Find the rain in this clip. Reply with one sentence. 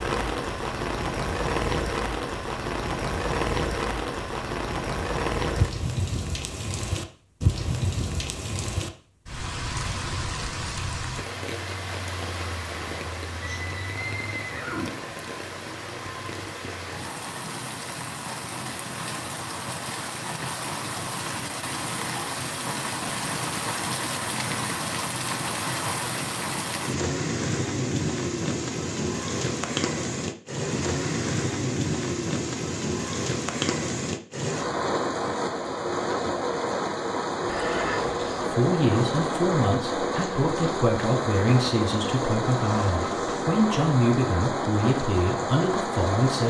You can hear the rain from 0.0 to 46.4 s.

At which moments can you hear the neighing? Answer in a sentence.
The neighing can be heard from 13.4 to 15.0 s and from 37.5 to 38.5 s.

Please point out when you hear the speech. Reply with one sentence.
The speech can be heard from 38.5 to 46.4 s.